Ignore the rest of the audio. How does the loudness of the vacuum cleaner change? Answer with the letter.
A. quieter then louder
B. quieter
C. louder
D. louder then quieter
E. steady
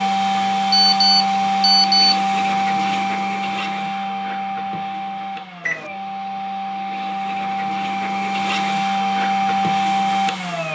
A.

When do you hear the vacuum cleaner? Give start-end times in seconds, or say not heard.
0.0-10.7.